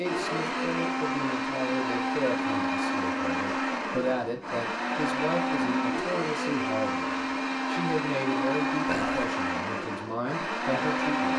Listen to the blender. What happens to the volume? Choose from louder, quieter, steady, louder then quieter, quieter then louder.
steady.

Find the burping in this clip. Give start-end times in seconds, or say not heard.
8.8-9.2.